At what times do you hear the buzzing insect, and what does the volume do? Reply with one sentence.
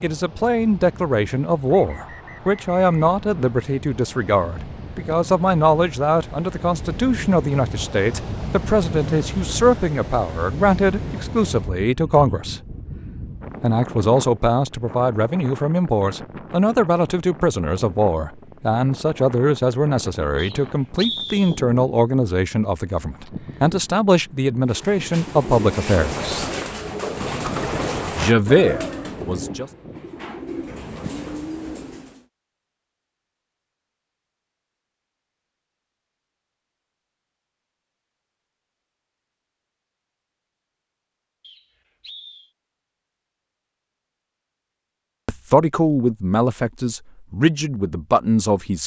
The buzzing insect can't be heard in this clip.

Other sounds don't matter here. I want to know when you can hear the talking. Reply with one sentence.
The talking can be heard from 0.0 to 12.6 s, from 13.6 to 26.4 s, from 28.1 to 29.7 s and from 45.2 to 48.8 s.